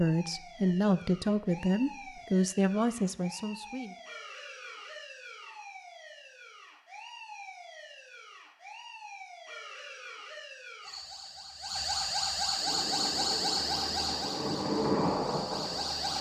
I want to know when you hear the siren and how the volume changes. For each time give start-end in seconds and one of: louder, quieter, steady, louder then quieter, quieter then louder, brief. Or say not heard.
0.0-16.1 louder.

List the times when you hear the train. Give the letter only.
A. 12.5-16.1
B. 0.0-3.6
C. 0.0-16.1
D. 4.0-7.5
A.